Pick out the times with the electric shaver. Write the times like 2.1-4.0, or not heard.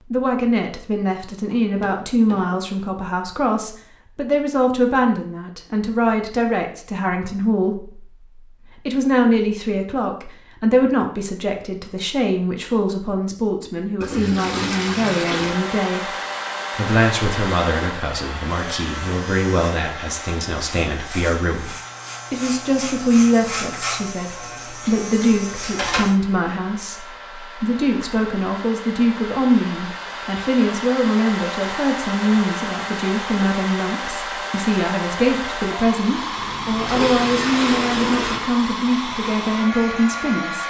18.7-26.1.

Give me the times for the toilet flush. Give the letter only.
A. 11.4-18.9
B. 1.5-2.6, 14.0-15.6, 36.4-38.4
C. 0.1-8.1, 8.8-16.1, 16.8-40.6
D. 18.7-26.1
B.